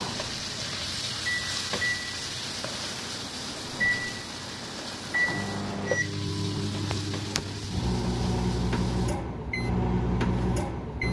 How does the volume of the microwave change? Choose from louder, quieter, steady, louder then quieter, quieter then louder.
louder.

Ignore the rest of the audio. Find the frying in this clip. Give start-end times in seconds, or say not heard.
0.0-9.1.